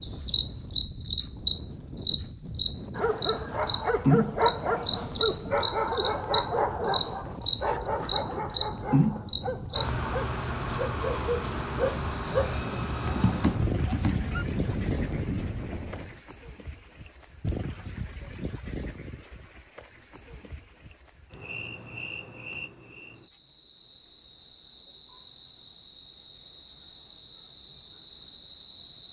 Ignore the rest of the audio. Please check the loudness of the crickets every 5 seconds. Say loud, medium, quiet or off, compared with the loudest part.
loud, loud, medium, quiet, quiet, quiet.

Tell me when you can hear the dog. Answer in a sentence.
The dog can be heard from 3.0 to 14.4 s.